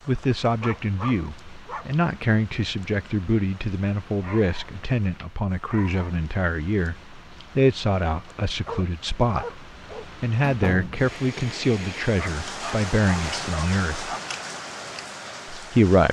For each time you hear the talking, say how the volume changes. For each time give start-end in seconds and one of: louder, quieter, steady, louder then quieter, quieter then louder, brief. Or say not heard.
0.1-14.1 steady
15.6-16.0 brief.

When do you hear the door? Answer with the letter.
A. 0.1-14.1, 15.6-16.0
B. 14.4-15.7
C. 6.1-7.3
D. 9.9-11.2
D.